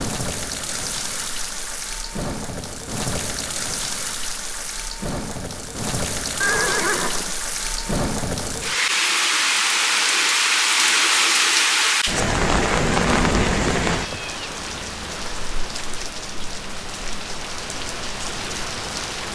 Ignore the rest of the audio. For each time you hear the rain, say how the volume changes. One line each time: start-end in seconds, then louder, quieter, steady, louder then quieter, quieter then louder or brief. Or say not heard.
0.0-19.3 louder then quieter.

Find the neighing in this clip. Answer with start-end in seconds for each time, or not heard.
6.4-7.3, 12.8-14.3.